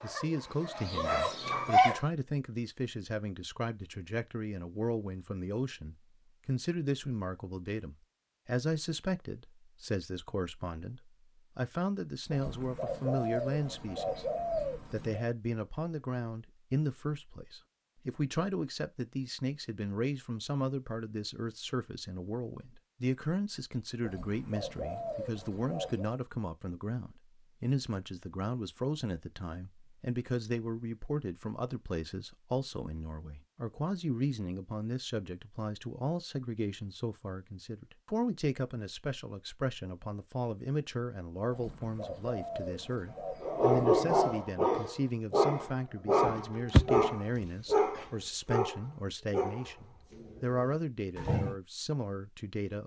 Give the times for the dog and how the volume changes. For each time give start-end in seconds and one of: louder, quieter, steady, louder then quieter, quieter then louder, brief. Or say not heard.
0.0-2.0 brief
43.4-51.5 quieter.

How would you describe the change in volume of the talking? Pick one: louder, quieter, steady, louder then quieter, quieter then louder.
steady.